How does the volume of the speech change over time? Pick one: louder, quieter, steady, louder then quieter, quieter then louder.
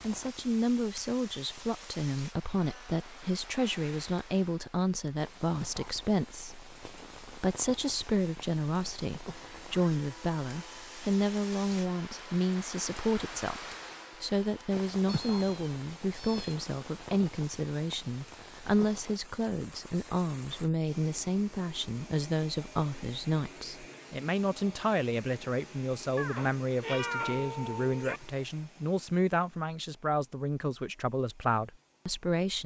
steady.